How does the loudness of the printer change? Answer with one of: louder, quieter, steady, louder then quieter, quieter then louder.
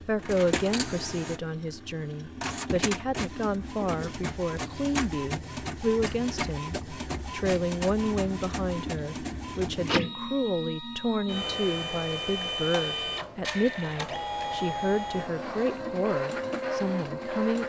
steady.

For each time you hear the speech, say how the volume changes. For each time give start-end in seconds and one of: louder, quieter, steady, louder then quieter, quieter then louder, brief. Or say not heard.
0.0-17.6 steady.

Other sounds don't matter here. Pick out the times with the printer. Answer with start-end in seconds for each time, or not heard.
0.0-17.6.